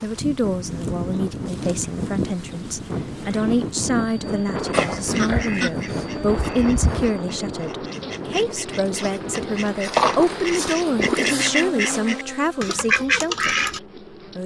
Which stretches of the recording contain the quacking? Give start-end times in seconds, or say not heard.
4.7-13.8.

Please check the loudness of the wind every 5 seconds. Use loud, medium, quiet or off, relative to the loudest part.
loud, loud, off.